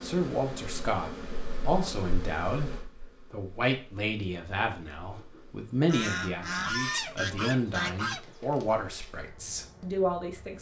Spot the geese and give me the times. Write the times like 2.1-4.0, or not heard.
5.8-8.2.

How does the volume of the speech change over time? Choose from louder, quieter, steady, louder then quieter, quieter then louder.
steady.